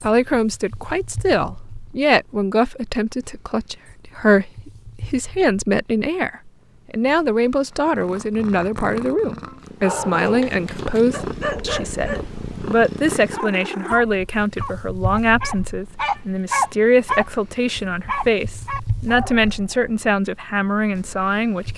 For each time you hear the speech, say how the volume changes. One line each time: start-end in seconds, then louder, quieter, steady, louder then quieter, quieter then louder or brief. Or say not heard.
0.0-21.7 steady.